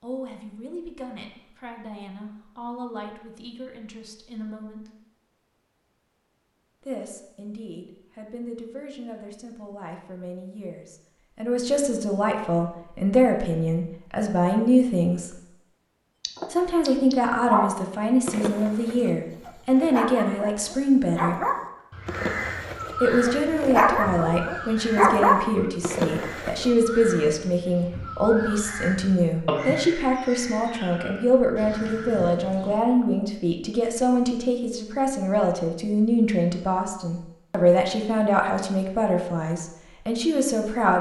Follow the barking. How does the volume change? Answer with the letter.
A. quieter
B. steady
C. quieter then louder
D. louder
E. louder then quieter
C.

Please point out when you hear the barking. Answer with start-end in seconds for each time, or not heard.
16.2-26.7.